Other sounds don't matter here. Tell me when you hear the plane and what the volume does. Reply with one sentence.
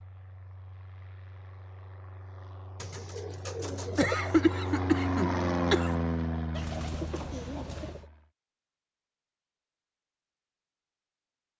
The plane can be heard from 0.0 to 8.3 s, getting louder then quieter.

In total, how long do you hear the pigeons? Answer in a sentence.
The pigeons can be heard for 3 seconds in total.